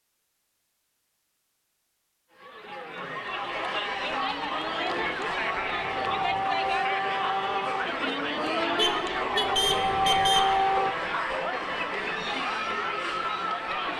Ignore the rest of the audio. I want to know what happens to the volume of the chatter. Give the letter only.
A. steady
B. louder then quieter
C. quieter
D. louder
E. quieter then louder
A.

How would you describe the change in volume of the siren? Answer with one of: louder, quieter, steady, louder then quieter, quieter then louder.
louder.